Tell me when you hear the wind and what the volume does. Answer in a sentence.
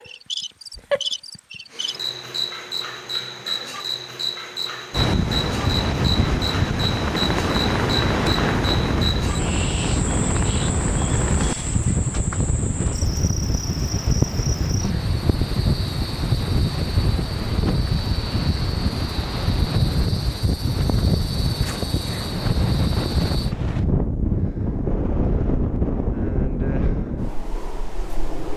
The wind can be heard from 4.9 to 28.5 s, at a steady volume.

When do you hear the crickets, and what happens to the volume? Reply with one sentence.
The crickets can be heard from 0.0 to 23.6 s, getting quieter.